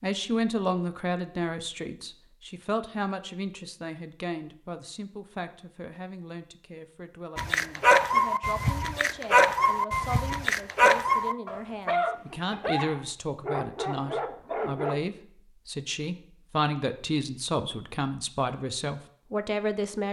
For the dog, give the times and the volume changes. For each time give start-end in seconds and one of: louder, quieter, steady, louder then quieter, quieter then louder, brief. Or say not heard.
7.3-15.0 quieter.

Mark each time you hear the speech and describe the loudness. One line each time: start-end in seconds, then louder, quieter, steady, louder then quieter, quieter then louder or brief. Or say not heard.
0.0-20.0 quieter then louder.